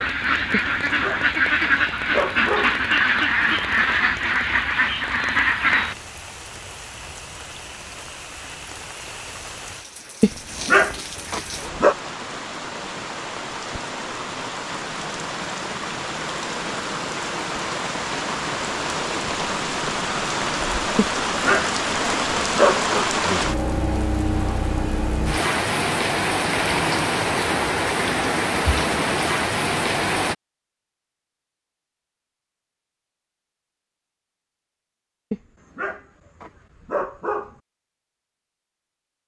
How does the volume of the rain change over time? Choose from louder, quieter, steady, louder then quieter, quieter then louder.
louder.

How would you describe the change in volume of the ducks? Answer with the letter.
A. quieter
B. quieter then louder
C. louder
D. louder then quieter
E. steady
E.